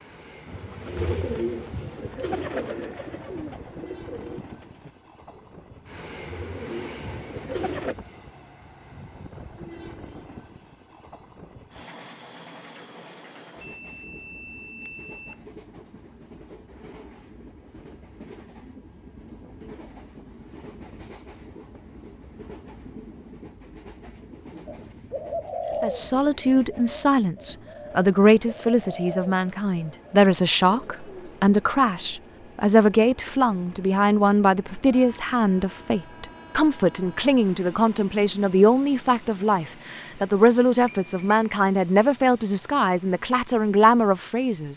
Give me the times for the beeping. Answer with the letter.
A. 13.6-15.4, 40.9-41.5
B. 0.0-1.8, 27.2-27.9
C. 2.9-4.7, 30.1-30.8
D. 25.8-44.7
A.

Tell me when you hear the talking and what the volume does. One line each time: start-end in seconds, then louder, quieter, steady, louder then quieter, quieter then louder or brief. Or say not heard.
25.8-44.7 steady.